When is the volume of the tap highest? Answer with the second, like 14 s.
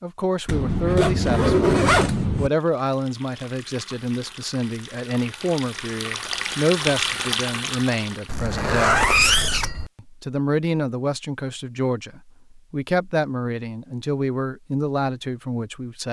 7 s.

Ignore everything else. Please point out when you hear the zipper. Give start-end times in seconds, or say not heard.
0.5-2.5, 8.2-9.9.